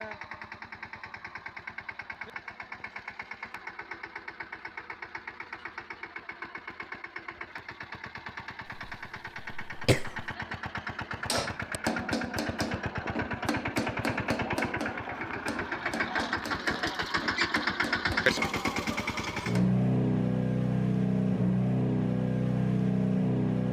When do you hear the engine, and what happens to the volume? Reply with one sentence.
The engine can be heard from 0.0 to 23.6 s, getting louder.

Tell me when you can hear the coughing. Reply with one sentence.
The coughing can be heard from 8.8 to 10.3 s.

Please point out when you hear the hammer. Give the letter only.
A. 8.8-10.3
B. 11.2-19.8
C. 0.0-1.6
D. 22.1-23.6
B.